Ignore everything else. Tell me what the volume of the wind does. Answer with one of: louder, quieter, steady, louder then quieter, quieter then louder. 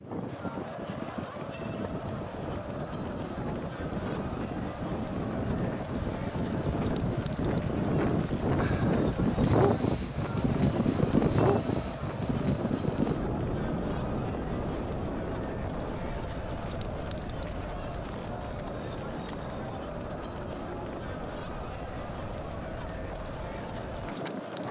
louder then quieter.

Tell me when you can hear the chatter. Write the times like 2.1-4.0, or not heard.
0.0-24.6.